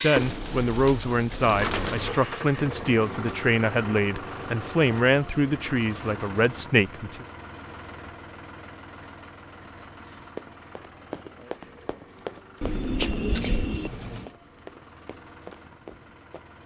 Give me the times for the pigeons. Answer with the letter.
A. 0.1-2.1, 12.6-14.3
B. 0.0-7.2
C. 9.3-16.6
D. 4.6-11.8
A.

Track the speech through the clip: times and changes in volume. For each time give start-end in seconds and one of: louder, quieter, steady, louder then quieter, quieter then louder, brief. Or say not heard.
0.0-7.2 steady.